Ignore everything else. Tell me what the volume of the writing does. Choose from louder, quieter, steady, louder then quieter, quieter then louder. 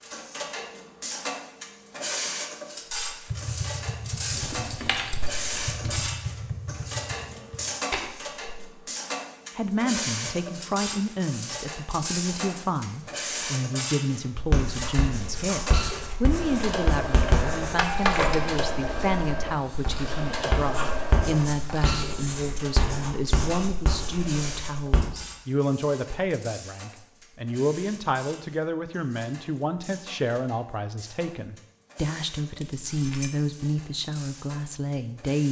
steady.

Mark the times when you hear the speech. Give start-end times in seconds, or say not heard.
9.6-35.4.